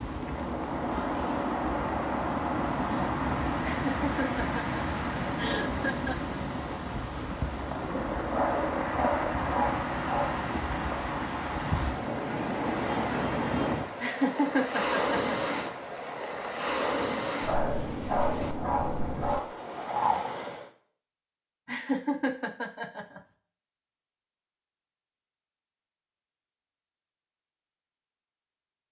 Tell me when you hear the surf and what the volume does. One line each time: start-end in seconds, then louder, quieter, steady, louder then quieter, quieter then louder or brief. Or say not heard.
0.0-20.7 steady.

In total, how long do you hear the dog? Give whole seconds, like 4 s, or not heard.
4 s.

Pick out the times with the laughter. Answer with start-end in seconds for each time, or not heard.
3.6-6.3, 14.0-15.3, 21.6-23.2.